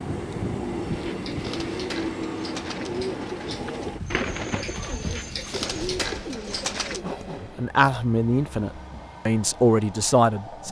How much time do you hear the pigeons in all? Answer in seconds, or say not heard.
6 s.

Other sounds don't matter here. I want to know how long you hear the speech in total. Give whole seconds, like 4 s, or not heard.
3 s.